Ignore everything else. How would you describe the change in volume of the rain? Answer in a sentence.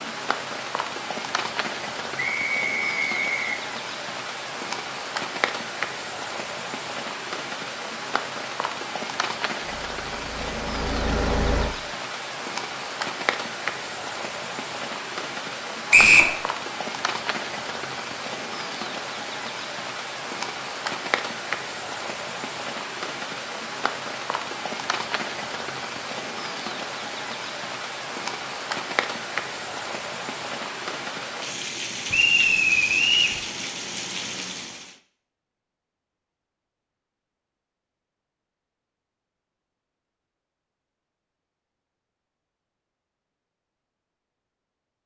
The loudness of the rain stays about the same.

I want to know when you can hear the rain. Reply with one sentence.
The rain can be heard from 0.0 to 35.0 s.